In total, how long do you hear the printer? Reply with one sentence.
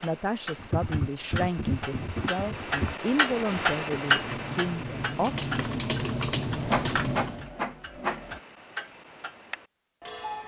You can hear the printer for 2 seconds altogether.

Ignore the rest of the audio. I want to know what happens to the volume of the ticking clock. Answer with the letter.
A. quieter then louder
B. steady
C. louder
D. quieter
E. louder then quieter
E.